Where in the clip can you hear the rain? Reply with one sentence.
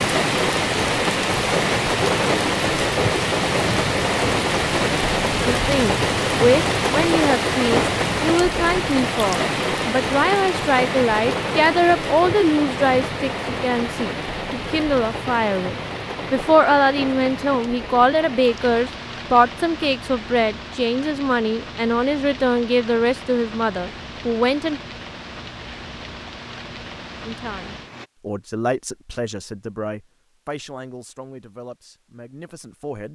The rain can be heard from 0.0 to 28.1 s.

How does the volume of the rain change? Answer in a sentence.
The volume of the rain goes down.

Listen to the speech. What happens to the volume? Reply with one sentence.
The loudness of the speech goes down.